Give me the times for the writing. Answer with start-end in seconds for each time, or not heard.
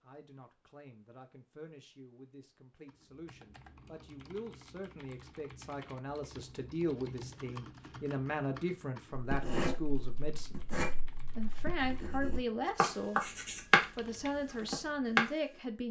9.1-15.3.